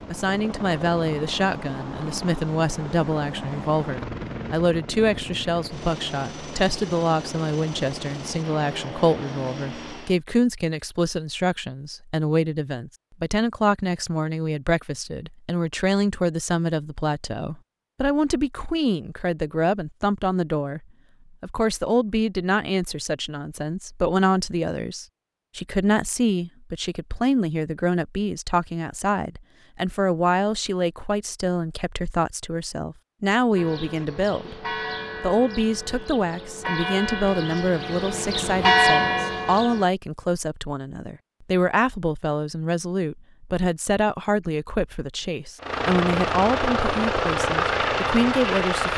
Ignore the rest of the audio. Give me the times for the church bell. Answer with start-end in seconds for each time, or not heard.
33.5-39.9.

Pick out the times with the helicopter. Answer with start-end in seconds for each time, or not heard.
0.0-10.2, 45.6-48.9.